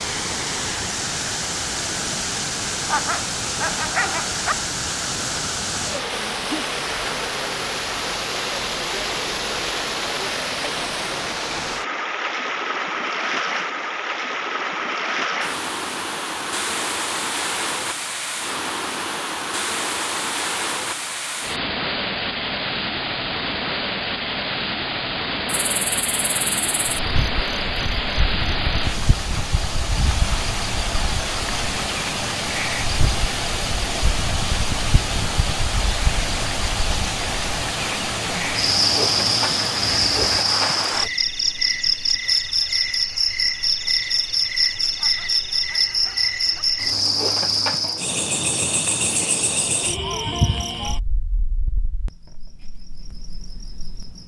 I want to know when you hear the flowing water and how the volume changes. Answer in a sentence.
The flowing water can be heard from 0.0 to 41.1 s, at a steady volume.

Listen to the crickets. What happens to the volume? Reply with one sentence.
The volume of the crickets goes up, then down.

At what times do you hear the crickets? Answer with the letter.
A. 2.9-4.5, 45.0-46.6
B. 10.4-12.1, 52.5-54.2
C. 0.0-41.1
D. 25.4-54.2
D.